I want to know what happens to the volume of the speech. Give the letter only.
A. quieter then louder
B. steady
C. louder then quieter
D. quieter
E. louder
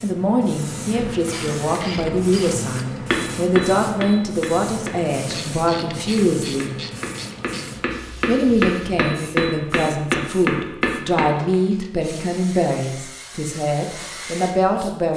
B.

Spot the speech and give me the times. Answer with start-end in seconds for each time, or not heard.
0.0-6.8, 8.2-15.1.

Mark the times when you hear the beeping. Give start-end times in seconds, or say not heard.
not heard.